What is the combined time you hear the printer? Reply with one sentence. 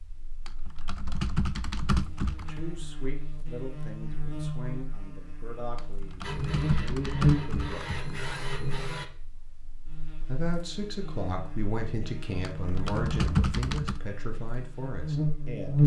You can hear the printer for 3 seconds altogether.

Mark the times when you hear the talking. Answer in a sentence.
The talking can be heard from 2.5 to 8.0 s and from 10.2 to 15.8 s.